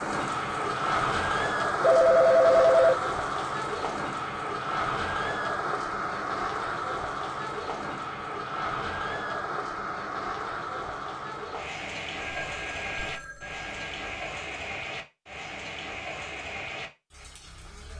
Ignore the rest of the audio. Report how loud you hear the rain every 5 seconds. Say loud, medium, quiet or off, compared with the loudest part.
loud, loud, medium, medium.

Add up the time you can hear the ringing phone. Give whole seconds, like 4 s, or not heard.
3 s.